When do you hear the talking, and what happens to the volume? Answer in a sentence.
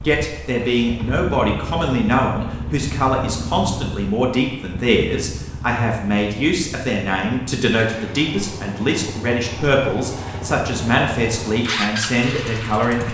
The talking can be heard from 0.0 to 13.0 s, at a steady volume.